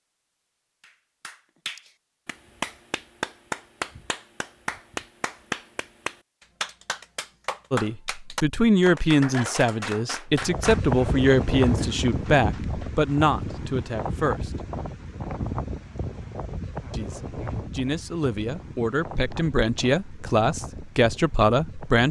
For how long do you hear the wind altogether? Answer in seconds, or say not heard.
12 s.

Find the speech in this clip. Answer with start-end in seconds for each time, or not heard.
7.7-14.7, 16.9-22.0.